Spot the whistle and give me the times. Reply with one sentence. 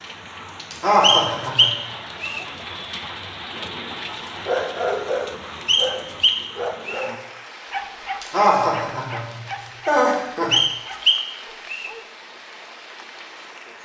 The whistle can be heard from 1.0 to 2.5 s, from 5.7 to 7.1 s and from 10.5 to 11.9 s.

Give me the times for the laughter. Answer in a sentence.
The laughter can be heard from 0.7 to 1.8 s and from 8.2 to 10.6 s.